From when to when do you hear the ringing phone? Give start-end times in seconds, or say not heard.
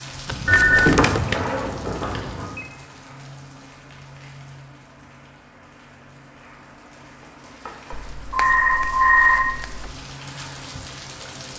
0.5-2.6, 7.7-9.4.